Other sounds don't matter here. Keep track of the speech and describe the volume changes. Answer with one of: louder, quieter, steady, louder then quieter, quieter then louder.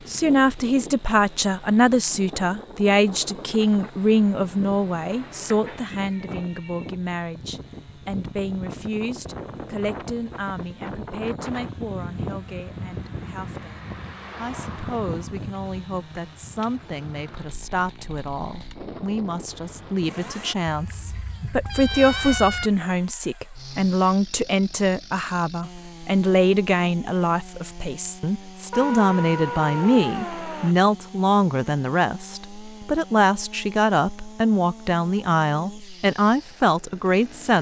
quieter then louder.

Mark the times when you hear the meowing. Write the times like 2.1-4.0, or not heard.
5.4-6.9, 20.6-22.7, 28.7-30.8.